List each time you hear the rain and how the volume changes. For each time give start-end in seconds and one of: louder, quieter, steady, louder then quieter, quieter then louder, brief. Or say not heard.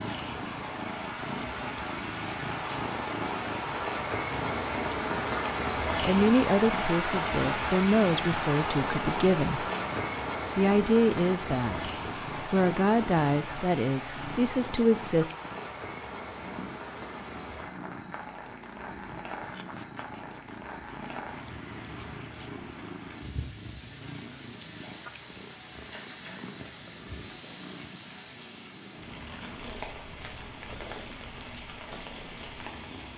0.0-33.1 quieter.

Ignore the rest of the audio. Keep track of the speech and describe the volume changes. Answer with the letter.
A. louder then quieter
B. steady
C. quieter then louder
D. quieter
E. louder
B.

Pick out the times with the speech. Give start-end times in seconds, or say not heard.
6.0-9.7, 10.6-15.3.